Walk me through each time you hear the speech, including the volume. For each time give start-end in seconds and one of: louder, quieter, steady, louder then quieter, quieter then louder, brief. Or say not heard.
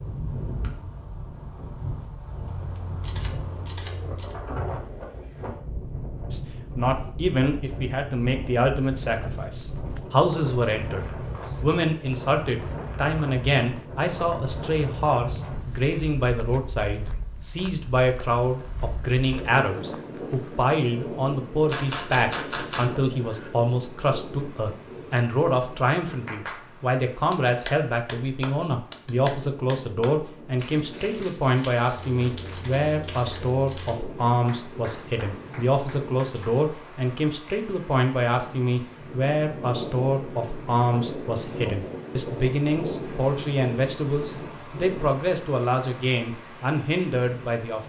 6.3-47.8 steady.